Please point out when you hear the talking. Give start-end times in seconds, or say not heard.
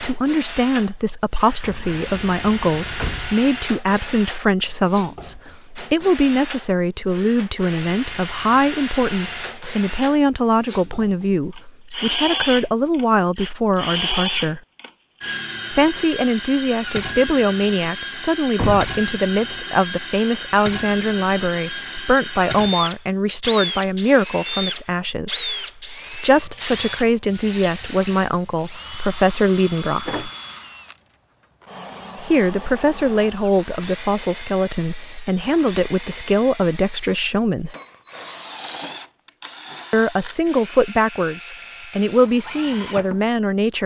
0.0-14.6, 15.7-30.2, 32.1-37.8, 39.9-43.8.